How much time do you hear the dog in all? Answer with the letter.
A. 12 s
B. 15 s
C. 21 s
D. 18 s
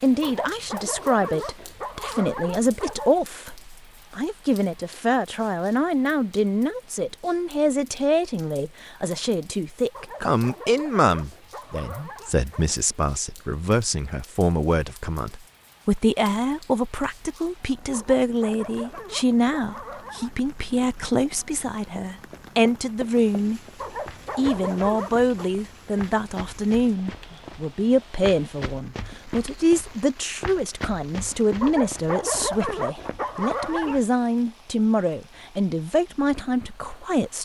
A.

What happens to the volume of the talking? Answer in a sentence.
The loudness of the talking stays about the same.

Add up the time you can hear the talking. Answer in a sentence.
You can hear the talking for 37 seconds altogether.